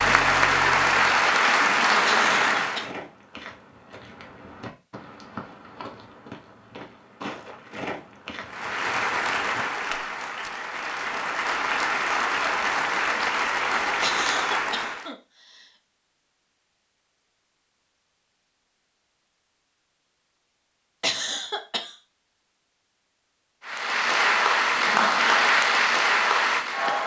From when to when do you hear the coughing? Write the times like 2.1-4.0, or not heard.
2.0-2.8, 14.0-15.7, 21.0-21.9.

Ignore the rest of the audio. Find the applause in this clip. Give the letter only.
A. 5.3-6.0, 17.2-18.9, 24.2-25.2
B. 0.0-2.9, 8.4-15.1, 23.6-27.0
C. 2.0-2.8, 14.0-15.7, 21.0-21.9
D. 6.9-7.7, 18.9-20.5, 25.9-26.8
B.